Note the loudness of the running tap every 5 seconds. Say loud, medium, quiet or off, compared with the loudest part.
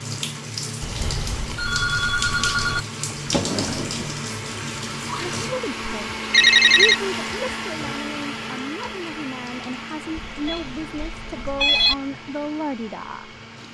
loud, medium, quiet.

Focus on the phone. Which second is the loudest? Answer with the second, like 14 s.
7 s.